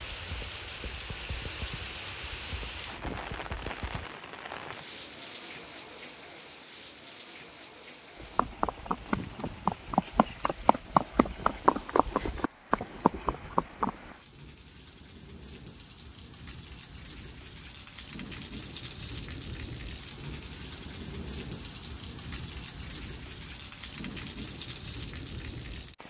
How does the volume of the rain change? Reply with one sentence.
The volume of the rain goes down, then up.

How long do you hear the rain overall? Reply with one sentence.
The rain can be heard for 26 seconds in total.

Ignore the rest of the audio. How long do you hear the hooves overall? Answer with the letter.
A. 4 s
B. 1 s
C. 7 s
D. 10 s
D.